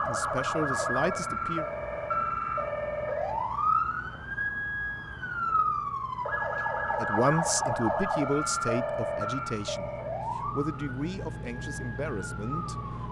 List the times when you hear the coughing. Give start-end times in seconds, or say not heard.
not heard.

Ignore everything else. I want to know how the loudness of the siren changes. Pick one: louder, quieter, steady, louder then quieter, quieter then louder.
quieter.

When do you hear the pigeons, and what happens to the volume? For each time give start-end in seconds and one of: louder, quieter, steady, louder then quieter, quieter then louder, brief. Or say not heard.
not heard.